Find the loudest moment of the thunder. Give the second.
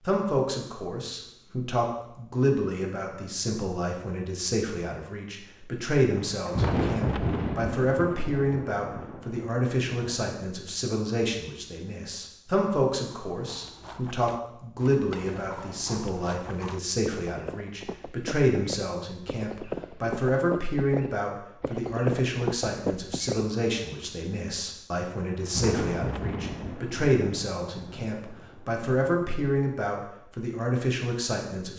7 s.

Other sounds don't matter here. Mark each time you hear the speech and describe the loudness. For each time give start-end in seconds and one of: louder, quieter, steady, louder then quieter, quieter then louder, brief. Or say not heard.
0.1-31.7 steady.